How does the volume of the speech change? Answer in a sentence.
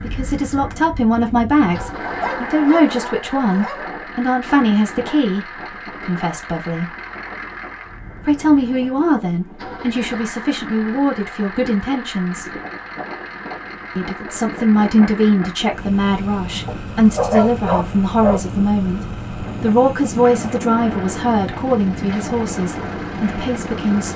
The loudness of the speech stays about the same.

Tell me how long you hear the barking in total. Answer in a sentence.
You can hear the barking for 4 seconds altogether.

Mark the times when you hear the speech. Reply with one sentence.
You can hear the speech from 0.0 to 7.0 s, from 8.2 to 12.4 s and from 13.9 to 24.1 s.